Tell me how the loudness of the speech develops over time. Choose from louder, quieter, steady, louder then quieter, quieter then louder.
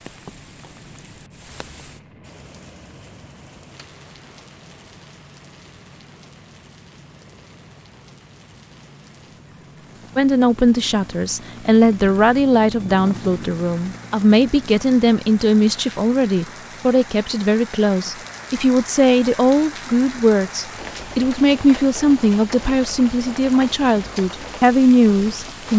steady.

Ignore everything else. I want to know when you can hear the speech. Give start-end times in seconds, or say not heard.
10.2-25.7.